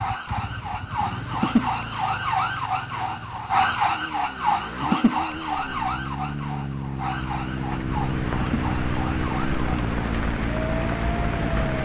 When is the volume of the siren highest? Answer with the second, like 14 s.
4 s.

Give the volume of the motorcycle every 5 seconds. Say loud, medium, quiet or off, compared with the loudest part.
medium, loud, loud.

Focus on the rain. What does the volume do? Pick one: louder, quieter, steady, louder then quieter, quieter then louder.
louder.